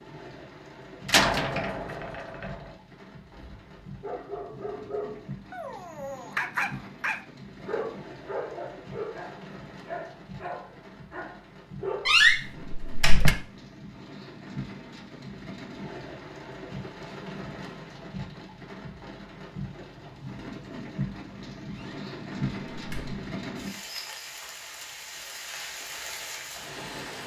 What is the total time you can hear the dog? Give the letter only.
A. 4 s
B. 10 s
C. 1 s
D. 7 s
B.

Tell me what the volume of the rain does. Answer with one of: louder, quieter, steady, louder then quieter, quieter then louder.
louder.